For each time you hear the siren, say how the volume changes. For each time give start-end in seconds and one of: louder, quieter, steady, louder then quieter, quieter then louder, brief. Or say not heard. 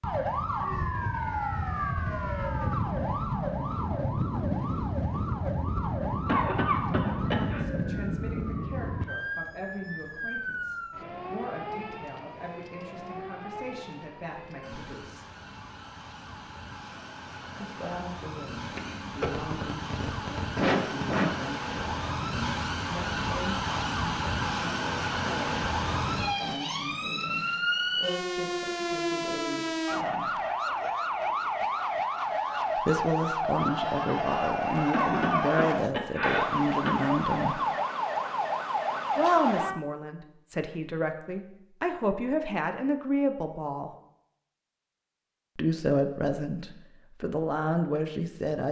0.0-39.8 quieter then louder.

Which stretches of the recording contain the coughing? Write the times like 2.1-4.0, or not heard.
6.2-7.6, 18.6-21.3, 34.9-37.0.